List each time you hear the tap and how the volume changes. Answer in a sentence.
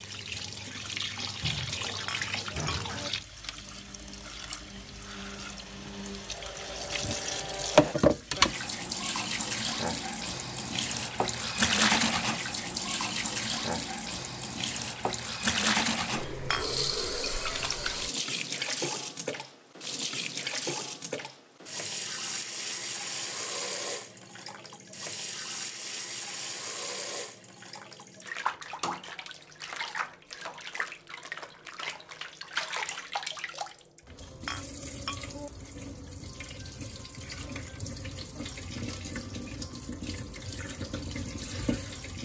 You can hear the tap from 0.0 to 42.2 s, getting quieter.